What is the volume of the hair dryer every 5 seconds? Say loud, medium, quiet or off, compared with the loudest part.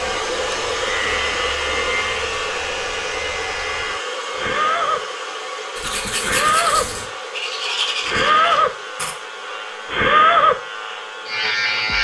loud, medium, quiet.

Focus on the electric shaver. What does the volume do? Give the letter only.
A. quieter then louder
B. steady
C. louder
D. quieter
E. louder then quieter
C.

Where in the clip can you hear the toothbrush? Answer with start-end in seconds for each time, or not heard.
5.8-9.2.